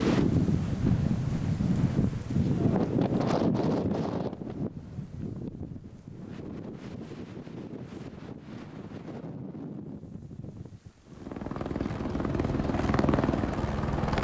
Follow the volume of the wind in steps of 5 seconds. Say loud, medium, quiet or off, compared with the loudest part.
loud, quiet, quiet.